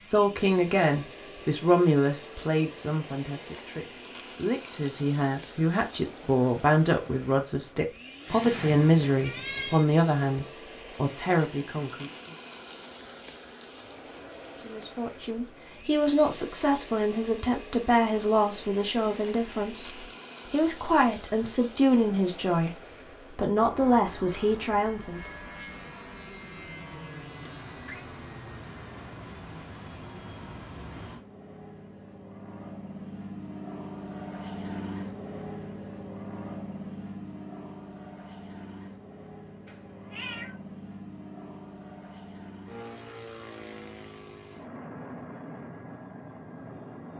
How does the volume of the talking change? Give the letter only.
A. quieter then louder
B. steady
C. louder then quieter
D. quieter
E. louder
B.